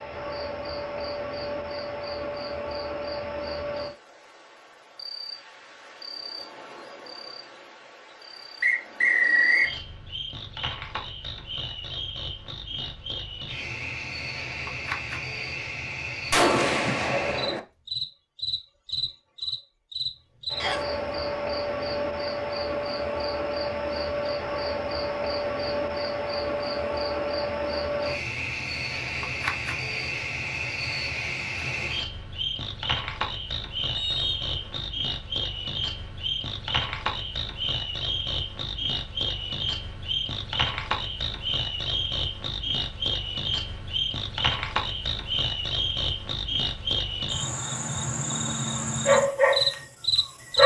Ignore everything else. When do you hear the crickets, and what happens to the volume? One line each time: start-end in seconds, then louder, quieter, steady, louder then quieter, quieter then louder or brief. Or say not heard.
0.0-50.6 louder.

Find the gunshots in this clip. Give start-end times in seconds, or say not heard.
16.3-17.6.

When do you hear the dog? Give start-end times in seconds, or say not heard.
49.0-50.6.